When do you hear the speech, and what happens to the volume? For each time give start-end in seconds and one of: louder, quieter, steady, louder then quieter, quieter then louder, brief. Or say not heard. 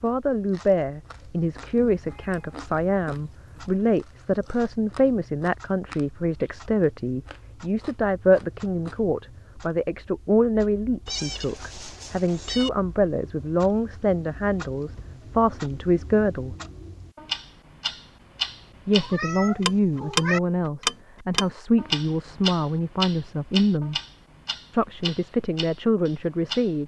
0.0-16.6 steady
18.9-24.0 steady
24.7-26.8 brief.